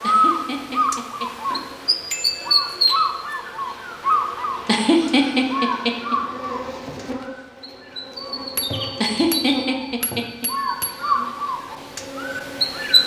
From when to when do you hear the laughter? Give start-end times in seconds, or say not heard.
0.0-1.2, 4.7-6.2, 9.0-10.4.